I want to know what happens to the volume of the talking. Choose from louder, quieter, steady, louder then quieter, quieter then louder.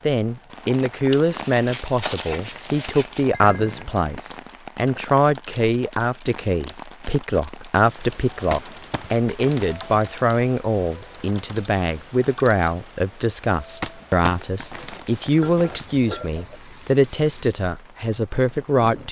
steady.